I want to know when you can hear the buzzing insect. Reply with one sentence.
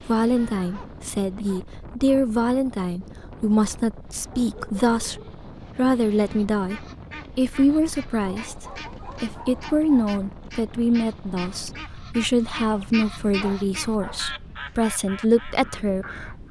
You can't hear the buzzing insect here.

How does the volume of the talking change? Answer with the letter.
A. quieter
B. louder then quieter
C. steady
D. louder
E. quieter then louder
C.